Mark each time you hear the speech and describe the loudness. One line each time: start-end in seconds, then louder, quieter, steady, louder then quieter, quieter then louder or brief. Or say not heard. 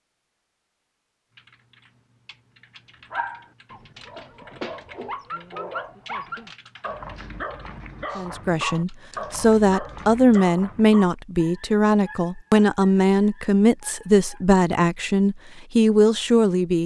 8.2-16.8 steady.